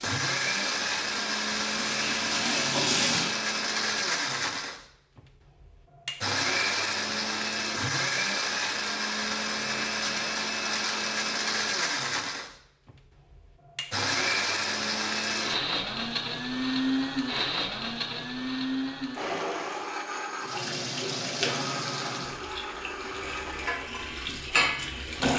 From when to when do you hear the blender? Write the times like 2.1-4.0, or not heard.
0.0-25.3.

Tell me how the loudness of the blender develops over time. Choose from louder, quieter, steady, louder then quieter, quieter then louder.
quieter.